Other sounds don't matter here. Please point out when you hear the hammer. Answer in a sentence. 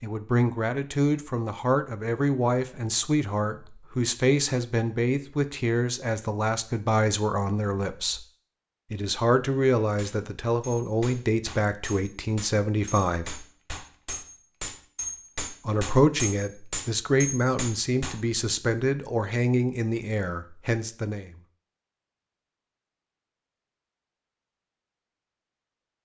The hammer can be heard from 9.9 to 18.2 s.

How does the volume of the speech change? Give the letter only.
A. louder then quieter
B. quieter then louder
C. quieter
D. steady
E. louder
D.